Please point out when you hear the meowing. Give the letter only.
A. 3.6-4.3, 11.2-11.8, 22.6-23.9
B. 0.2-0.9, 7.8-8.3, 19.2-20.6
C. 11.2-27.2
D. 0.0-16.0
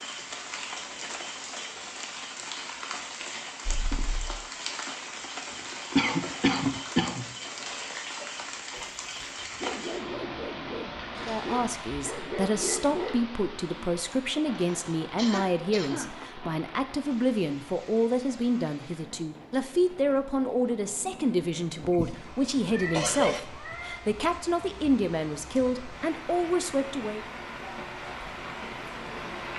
A.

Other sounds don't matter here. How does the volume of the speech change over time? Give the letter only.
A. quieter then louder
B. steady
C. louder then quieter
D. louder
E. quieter
B.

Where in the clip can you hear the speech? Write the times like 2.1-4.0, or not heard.
11.2-27.2.